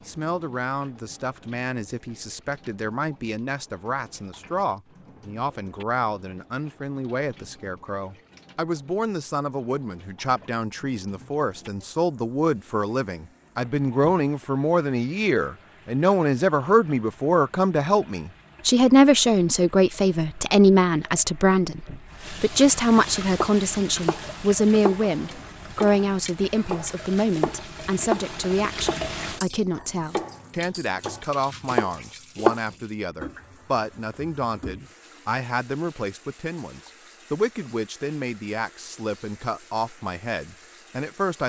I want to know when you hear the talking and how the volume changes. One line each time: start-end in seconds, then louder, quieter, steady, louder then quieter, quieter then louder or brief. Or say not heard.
0.1-41.4 louder then quieter.